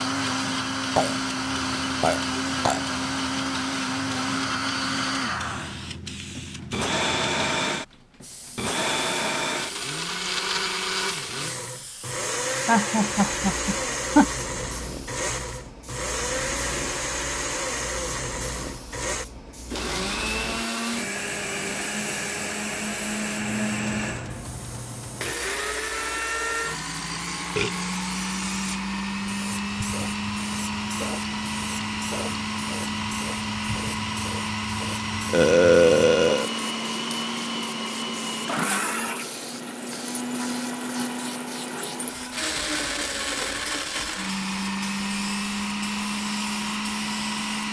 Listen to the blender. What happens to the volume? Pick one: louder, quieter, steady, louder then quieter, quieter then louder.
steady.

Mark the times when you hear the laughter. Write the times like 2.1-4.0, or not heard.
12.7-14.2.